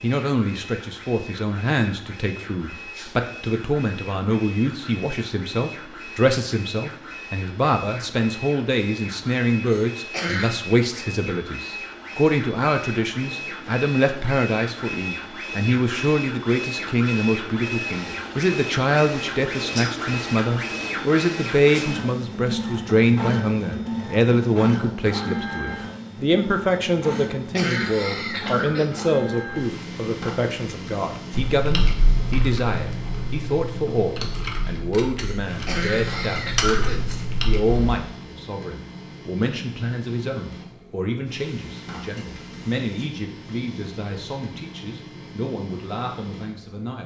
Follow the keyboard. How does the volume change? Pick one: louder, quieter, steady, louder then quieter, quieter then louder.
quieter then louder.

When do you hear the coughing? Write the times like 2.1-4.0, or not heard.
9.7-10.6, 27.1-29.1, 35.2-37.1.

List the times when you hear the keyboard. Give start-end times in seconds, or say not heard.
31.3-38.0.